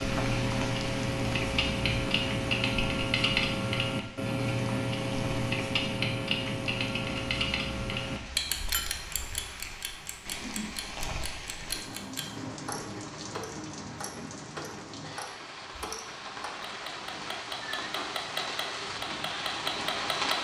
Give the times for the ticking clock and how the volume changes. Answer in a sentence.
The ticking clock can be heard from 0.0 to 20.3 s, getting quieter.